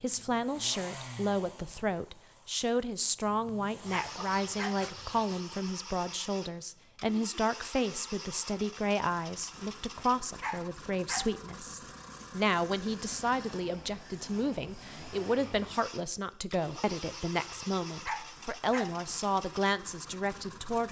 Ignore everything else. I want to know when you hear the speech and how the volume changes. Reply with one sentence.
You can hear the speech from 0.0 to 20.8 s, at a steady volume.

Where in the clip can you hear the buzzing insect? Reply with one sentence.
The buzzing insect can't be heard in this clip.